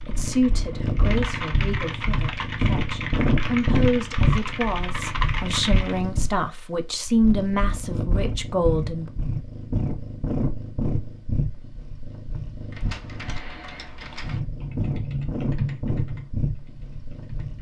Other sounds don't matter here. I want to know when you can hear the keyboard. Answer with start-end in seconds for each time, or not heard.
0.0-6.0, 12.7-17.5.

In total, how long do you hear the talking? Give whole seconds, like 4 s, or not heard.
9 s.